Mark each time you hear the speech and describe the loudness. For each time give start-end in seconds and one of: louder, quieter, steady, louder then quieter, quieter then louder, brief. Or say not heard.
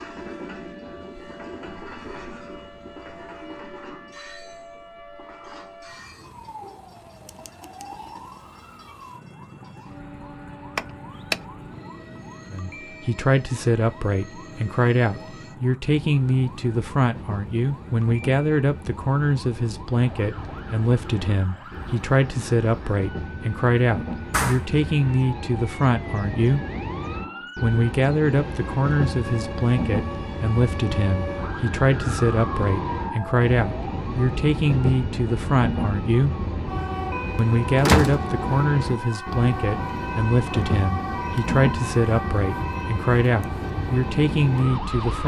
12.5-26.6 steady
27.6-36.4 steady
37.4-45.2 steady.